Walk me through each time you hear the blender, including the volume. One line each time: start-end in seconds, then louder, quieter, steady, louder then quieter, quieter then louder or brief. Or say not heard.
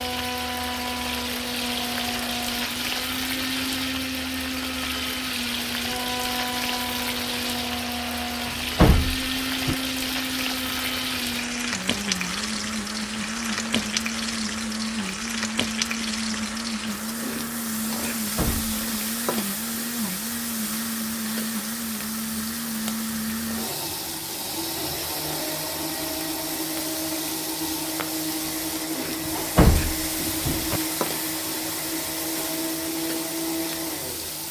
0.0-34.4 steady.